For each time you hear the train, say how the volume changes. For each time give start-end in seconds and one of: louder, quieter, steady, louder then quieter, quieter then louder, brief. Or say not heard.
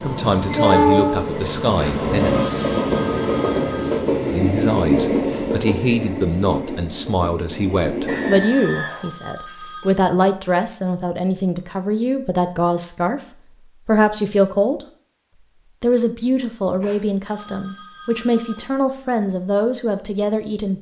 0.0-8.5 quieter.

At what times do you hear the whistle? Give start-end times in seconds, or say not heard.
8.1-9.1.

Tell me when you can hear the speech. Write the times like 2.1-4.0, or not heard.
0.0-2.3, 4.3-13.2, 13.8-14.8, 15.8-20.7.